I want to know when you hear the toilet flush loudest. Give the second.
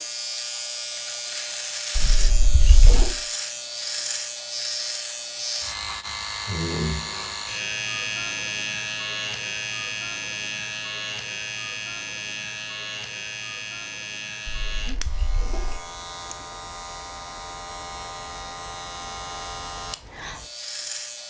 3 s.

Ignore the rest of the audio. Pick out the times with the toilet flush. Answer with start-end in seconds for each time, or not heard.
1.9-3.0, 14.4-15.8.